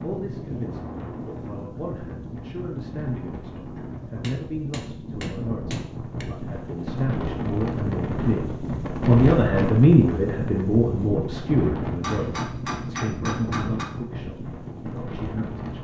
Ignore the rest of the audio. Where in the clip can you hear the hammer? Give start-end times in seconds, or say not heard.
4.2-6.2, 12.0-13.8.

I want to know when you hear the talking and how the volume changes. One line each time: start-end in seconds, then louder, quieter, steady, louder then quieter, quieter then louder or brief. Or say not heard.
0.0-15.7 louder then quieter.